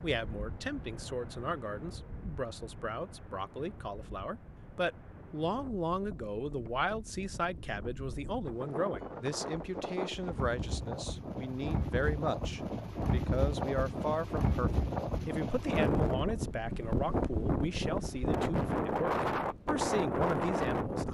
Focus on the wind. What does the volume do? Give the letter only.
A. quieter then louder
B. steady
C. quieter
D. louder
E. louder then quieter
D.